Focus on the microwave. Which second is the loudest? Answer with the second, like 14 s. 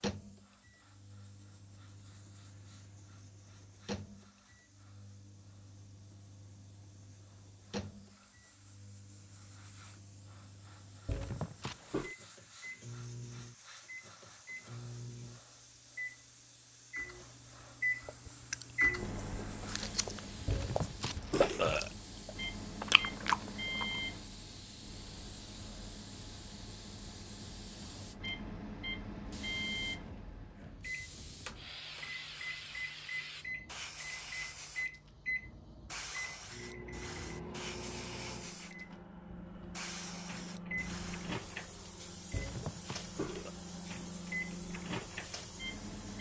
18 s.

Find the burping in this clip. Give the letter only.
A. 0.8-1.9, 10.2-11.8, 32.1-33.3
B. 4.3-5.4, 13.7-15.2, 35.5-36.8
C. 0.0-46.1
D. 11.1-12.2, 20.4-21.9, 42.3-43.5
D.